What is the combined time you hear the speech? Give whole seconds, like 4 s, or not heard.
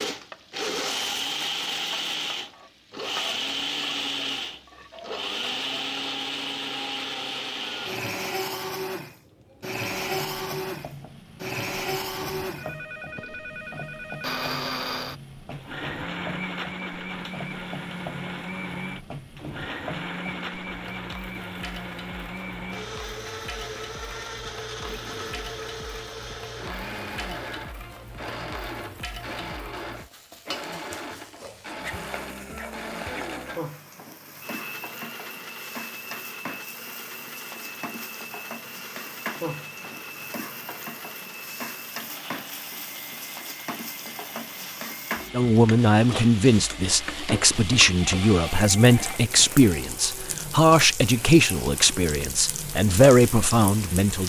9 s.